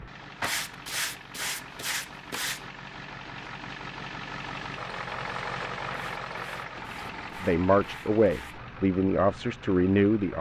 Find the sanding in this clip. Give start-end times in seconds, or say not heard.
0.4-2.6, 5.9-8.6.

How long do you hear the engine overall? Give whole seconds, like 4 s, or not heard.
10 s.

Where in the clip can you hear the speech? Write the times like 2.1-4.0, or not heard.
7.4-10.3.